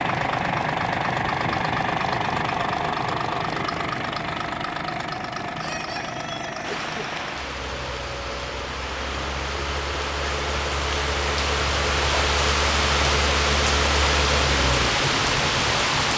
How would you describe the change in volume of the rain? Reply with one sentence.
The loudness of the rain goes up.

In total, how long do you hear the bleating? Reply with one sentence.
You can't hear the bleating here.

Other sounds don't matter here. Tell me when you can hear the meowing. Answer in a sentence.
The meowing can't be heard in this clip.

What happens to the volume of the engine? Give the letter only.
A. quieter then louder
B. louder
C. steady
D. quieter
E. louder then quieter
A.